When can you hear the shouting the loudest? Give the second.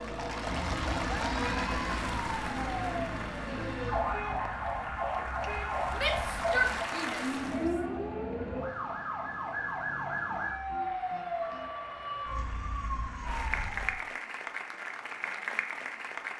7 s.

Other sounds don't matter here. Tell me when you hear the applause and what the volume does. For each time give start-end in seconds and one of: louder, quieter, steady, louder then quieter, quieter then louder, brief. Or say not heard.
0.0-7.7 quieter then louder
10.4-16.3 louder.